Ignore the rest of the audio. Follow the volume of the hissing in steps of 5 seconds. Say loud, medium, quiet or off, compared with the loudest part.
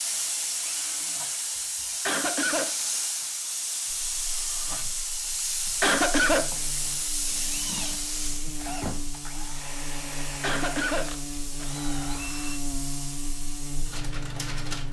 loud, loud, medium.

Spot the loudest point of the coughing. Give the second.
6 s.